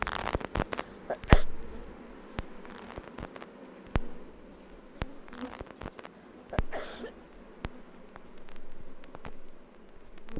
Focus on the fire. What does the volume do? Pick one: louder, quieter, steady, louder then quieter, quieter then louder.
quieter.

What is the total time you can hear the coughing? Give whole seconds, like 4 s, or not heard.
2 s.